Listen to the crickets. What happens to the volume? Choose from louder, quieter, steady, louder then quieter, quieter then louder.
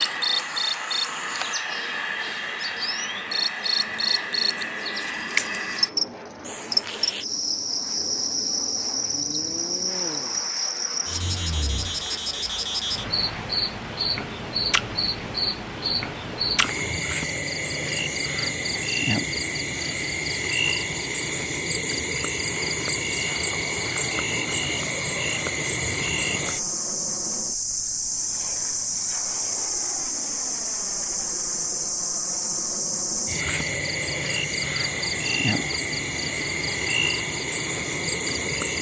steady.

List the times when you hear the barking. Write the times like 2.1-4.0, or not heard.
not heard.